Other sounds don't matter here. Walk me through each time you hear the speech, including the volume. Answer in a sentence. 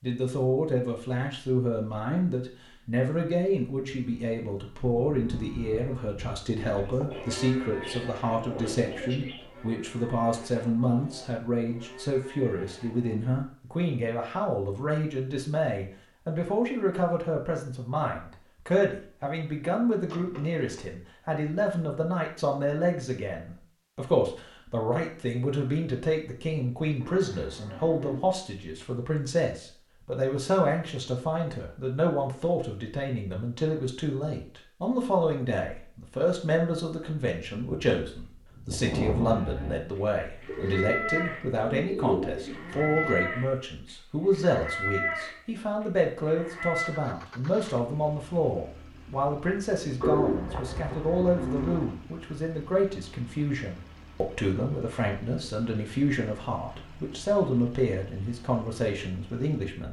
The speech can be heard from 0.0 to 59.8 s, at a steady volume.